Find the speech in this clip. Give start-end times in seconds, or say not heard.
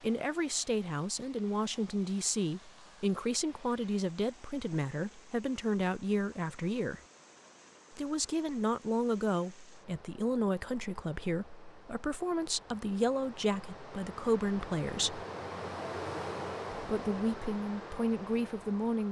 0.0-7.0, 8.0-15.2, 16.7-19.0.